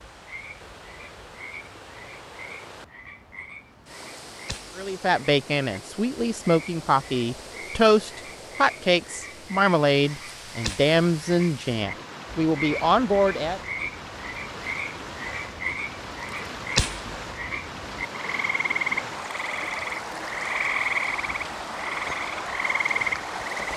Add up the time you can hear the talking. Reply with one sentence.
The talking can be heard for 9 seconds in total.